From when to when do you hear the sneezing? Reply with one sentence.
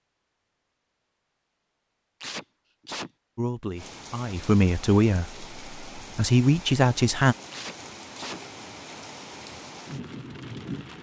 You can hear the sneezing from 2.2 to 3.1 s and from 7.5 to 8.4 s.